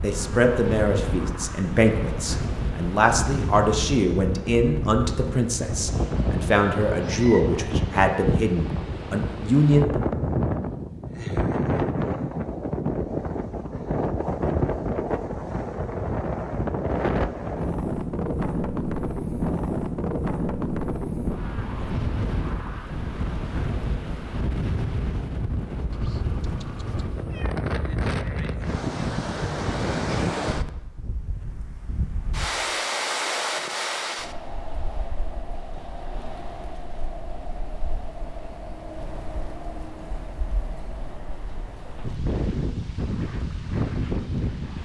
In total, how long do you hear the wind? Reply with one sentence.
You can hear the wind for 45 seconds altogether.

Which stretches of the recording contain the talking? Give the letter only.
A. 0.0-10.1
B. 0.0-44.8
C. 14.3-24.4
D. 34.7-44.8
A.